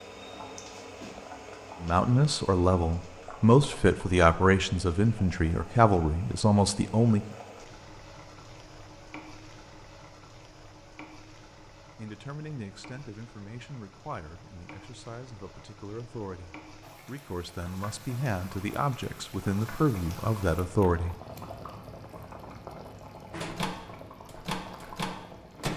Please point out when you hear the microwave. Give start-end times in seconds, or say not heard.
23.3-25.7.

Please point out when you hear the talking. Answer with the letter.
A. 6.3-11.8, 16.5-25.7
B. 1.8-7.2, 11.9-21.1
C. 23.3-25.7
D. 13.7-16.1
B.